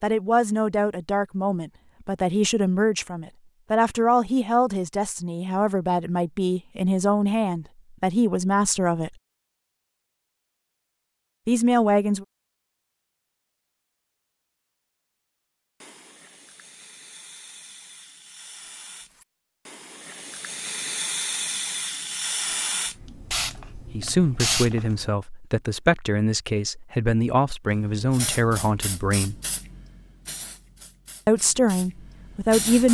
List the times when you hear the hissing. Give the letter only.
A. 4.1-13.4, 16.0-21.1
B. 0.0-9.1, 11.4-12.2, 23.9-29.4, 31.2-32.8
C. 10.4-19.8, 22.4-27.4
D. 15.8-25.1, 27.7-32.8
D.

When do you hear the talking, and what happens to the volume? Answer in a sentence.
You can hear the talking from 0.0 to 9.1 s, at a steady volume; briefly from 11.4 to 12.2 s; from 23.9 to 29.4 s, at a steady volume; and briefly from 31.2 to 32.8 s.